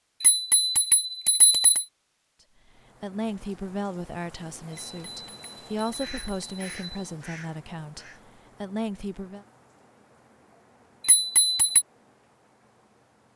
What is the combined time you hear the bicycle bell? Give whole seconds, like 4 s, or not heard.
5 s.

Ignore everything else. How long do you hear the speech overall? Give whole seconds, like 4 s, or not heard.
7 s.